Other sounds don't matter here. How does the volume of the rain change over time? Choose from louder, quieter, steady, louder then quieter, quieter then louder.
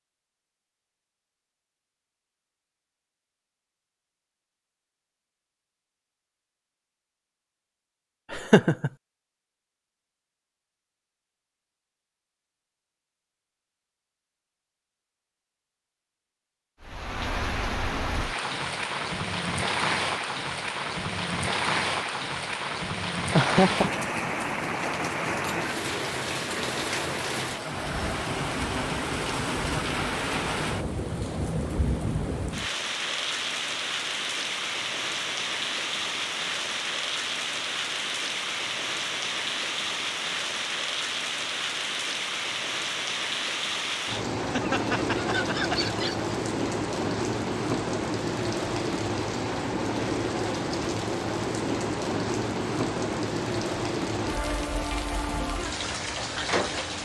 steady.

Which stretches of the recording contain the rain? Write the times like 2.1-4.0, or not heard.
16.8-56.9.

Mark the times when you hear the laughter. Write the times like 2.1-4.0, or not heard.
8.3-8.9, 23.4-23.9, 44.4-46.3.